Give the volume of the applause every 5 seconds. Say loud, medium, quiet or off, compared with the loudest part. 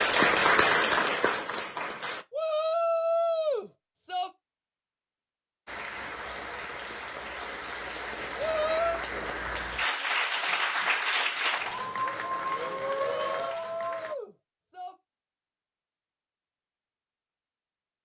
loud, medium, medium, off.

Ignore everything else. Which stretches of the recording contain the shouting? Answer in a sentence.
The shouting can be heard from 2.3 to 4.3 s, from 8.3 to 9.0 s and from 13.2 to 14.9 s.